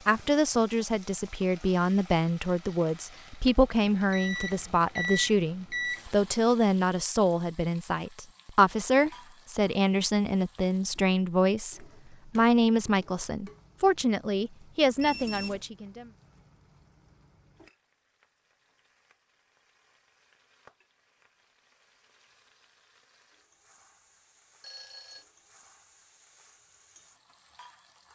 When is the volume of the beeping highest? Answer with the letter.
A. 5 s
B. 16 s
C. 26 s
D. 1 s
A.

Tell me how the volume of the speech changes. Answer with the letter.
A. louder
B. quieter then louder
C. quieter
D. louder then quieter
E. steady
E.